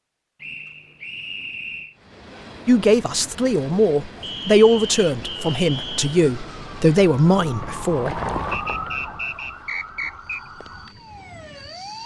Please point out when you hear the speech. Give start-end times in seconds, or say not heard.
2.6-8.2.